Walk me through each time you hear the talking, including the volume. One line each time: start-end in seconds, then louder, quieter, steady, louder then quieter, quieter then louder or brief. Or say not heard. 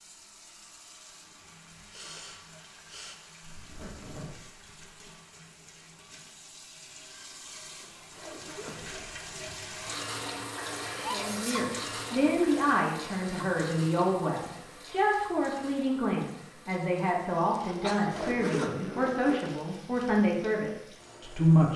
11.1-21.7 steady.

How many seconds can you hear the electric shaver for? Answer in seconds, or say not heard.
not heard.